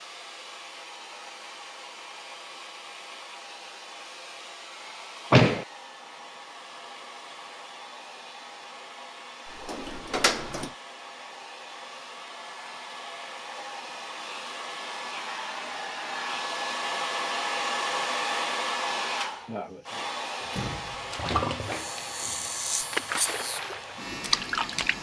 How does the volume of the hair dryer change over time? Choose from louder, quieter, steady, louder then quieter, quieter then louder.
louder then quieter.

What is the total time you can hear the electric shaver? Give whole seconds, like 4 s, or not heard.
3 s.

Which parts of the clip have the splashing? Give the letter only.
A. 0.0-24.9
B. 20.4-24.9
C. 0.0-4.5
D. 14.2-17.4
B.